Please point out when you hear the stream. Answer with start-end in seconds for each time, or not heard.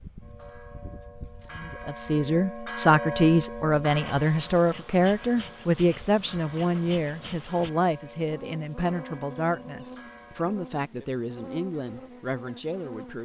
not heard.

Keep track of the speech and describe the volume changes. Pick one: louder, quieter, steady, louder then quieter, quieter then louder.
quieter.